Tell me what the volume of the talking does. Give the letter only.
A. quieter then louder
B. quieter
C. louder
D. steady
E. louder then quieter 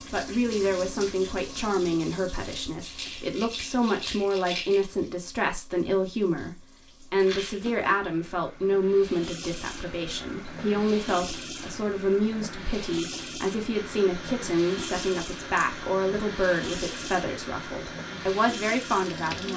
D.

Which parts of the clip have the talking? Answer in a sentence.
The talking can be heard from 0.1 to 19.5 s.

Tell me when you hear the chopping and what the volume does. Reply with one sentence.
You can't hear the chopping here.